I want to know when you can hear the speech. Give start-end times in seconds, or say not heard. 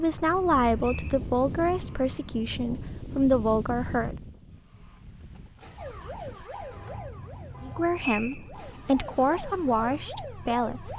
0.0-4.2, 7.6-10.9.